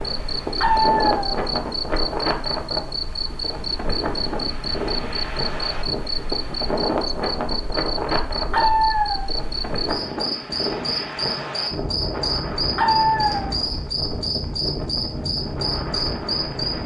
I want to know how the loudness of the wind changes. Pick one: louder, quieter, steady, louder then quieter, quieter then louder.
steady.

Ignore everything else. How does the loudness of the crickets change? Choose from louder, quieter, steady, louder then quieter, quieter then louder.
steady.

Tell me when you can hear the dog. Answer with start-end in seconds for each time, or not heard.
0.6-1.3, 8.4-9.2, 12.7-13.4.